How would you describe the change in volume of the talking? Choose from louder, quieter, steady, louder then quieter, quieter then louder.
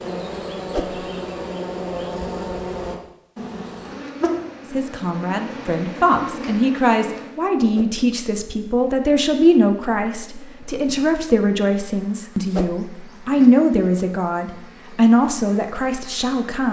steady.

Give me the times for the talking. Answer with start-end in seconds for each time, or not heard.
4.7-16.6.